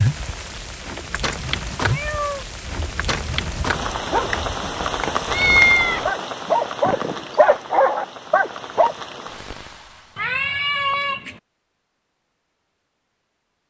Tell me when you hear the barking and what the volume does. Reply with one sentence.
The barking can be heard from 2.6 to 8.9 s, getting louder.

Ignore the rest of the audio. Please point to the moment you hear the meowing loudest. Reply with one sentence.
The volume of the meowing peaks at 6 seconds.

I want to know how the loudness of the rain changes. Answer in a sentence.
The loudness of the rain goes down.